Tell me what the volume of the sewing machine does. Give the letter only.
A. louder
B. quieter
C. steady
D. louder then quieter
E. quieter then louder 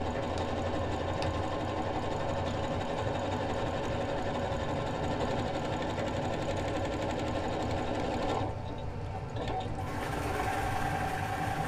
C.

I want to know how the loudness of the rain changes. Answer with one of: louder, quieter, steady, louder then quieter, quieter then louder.
steady.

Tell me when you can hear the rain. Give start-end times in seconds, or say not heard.
0.0-11.6.